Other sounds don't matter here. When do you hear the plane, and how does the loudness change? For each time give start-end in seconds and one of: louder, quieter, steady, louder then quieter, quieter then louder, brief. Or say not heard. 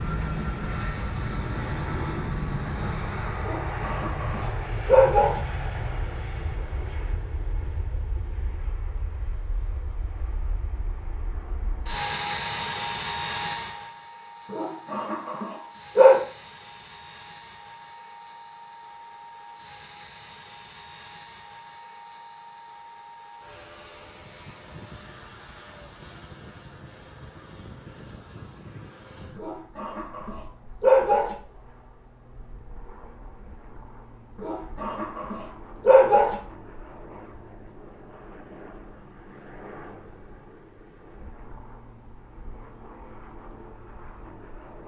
0.0-44.8 quieter.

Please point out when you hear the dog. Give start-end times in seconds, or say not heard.
3.5-5.4, 14.5-16.2, 29.4-31.4, 34.4-36.4.